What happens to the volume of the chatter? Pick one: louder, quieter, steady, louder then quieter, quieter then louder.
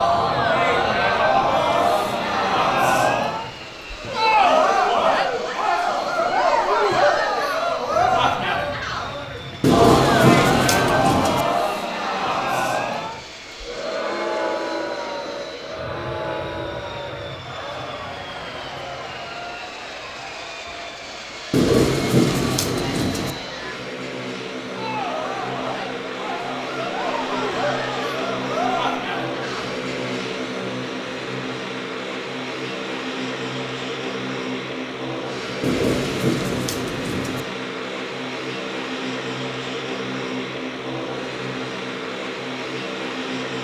quieter then louder.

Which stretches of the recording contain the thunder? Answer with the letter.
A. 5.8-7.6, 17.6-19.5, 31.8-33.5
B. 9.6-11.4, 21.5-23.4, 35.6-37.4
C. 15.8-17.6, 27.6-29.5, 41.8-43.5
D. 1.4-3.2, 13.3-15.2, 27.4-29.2
B.